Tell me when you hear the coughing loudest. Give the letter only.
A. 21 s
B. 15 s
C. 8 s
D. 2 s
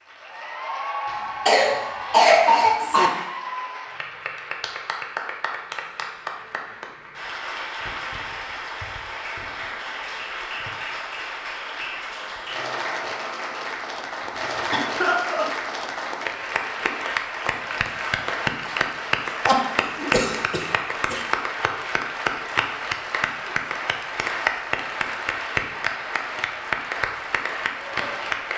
D.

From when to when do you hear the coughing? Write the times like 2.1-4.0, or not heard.
1.1-3.1, 14.2-15.5, 19.2-21.2.